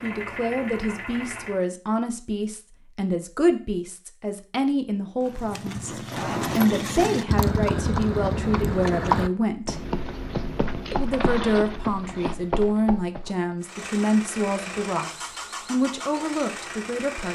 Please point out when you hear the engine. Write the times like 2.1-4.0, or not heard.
0.0-1.6, 13.6-17.3.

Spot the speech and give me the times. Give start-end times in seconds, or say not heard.
0.0-6.0, 6.5-9.8, 10.9-17.3.